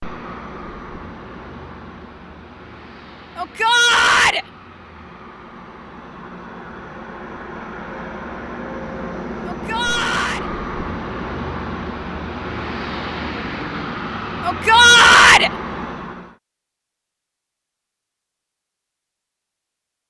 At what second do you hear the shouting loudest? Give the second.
15 s.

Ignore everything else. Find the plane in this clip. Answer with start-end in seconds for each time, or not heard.
0.0-16.4.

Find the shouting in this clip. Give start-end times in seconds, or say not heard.
3.4-4.5, 9.4-10.5, 14.4-15.5.